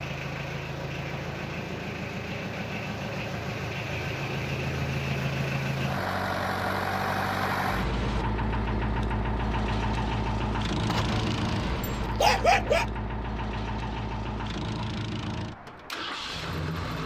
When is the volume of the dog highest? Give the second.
12 s.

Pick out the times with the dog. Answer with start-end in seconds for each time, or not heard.
10.8-12.8.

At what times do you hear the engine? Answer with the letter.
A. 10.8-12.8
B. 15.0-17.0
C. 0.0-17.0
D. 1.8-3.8
C.